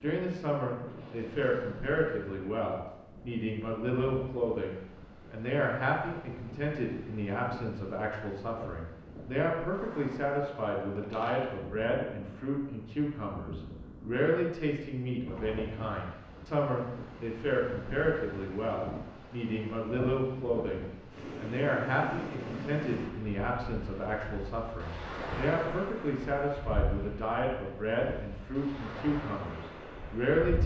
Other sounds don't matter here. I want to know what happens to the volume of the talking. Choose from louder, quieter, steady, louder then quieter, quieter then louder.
steady.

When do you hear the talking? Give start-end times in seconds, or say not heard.
0.0-30.6.